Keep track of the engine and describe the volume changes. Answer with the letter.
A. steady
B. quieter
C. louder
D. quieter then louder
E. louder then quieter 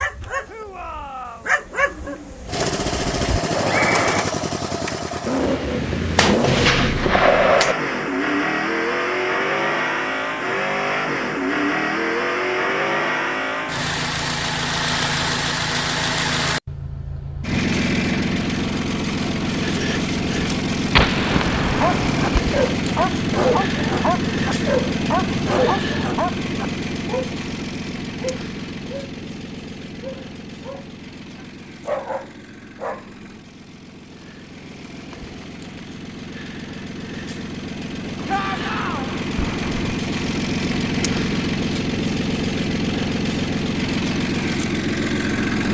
D.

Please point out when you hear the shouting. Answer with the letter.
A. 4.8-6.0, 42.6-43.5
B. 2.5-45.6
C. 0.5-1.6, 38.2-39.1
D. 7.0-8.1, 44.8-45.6
C.